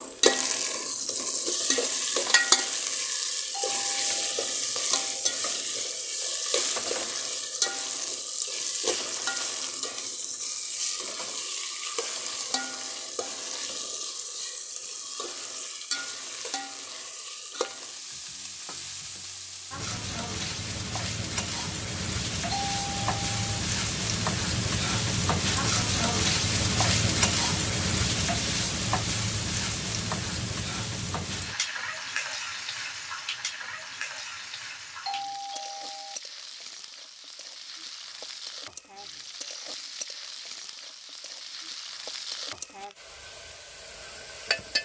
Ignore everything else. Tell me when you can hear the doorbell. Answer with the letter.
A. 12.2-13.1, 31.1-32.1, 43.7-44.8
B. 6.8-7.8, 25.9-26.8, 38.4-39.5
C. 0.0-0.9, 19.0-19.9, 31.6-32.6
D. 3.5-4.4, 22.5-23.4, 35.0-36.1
D.